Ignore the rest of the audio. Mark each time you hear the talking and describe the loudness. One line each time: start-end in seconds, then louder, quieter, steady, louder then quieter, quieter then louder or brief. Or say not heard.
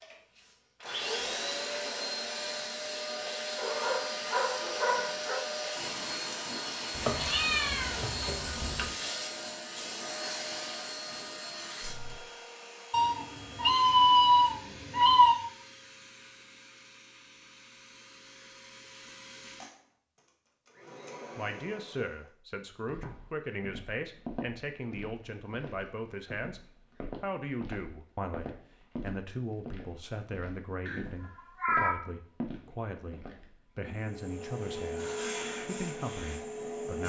21.4-26.6 steady
27.2-37.0 steady.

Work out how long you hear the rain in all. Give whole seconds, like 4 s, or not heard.
not heard.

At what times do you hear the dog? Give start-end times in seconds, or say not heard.
3.5-5.5.